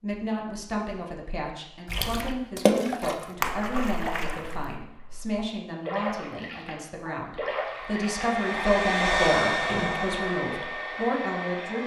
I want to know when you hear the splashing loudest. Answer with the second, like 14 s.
3 s.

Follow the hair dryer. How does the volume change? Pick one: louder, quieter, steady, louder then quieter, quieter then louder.
louder then quieter.